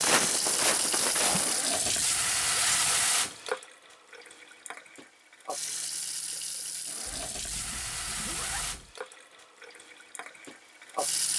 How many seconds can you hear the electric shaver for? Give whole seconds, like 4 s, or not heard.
not heard.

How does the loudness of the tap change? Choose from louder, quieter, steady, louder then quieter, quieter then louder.
quieter.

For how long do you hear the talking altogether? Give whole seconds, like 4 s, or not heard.
not heard.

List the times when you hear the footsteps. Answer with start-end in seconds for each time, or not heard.
0.0-1.6.